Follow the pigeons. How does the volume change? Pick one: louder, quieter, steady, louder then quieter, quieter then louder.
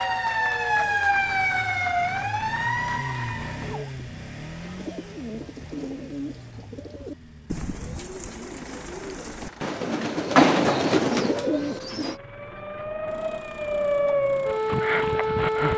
louder.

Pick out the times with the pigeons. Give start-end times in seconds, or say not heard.
4.6-12.2.